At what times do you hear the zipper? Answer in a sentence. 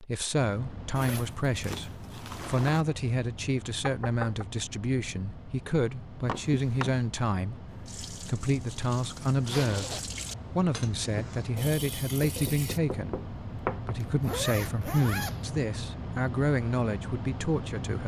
You can hear the zipper from 0.9 to 2.9 s, from 9.4 to 10.1 s and from 14.1 to 15.5 s.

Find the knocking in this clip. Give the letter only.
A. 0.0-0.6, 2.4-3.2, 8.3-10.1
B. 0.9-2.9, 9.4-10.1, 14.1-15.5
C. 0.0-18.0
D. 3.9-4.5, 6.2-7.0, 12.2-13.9
D.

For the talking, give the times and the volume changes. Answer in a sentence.
You can hear the talking from 0.0 to 18.0 s, at a steady volume.